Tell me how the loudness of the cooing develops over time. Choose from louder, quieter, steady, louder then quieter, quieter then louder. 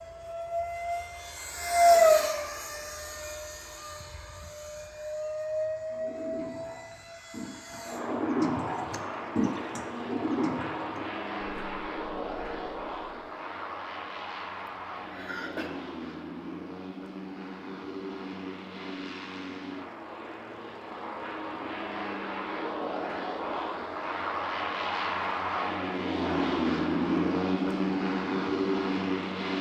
louder then quieter.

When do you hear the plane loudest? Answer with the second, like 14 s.
2 s.